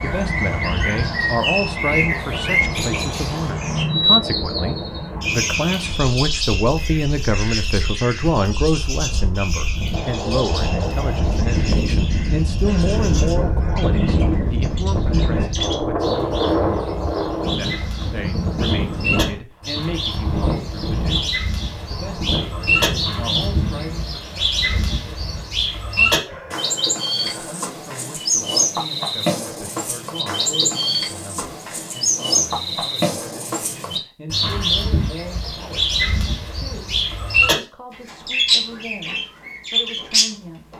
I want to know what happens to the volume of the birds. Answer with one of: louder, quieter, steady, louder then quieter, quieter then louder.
quieter then louder.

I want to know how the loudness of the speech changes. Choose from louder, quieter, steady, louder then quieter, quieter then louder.
quieter.